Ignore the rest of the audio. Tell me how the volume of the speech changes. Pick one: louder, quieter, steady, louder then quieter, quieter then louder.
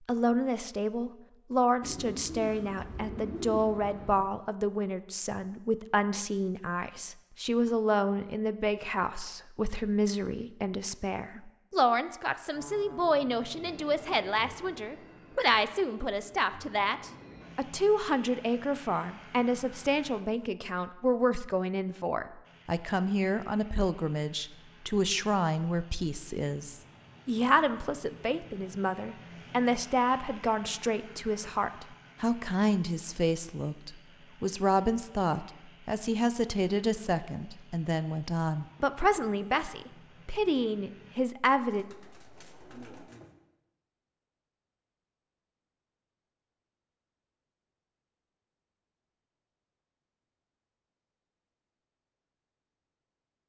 steady.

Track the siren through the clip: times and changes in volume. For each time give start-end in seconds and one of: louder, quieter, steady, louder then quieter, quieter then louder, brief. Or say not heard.
not heard.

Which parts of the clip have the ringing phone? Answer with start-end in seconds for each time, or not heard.
not heard.